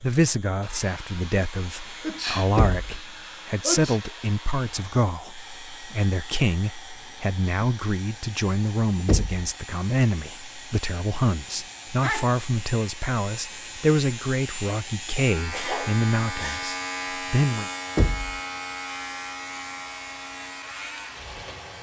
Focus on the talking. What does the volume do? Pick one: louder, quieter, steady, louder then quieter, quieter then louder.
steady.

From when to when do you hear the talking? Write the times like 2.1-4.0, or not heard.
0.0-17.7.